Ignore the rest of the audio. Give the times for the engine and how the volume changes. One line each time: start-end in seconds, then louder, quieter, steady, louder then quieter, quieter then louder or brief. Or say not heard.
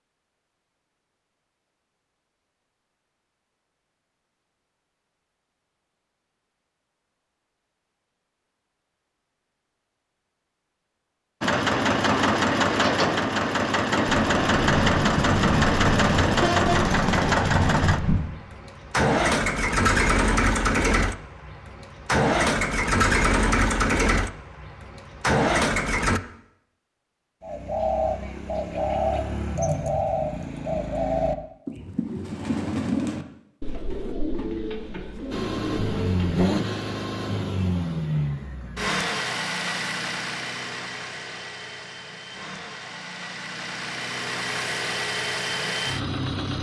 11.4-26.2 steady
35.3-46.5 quieter then louder.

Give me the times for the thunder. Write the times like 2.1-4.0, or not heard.
14.1-18.3.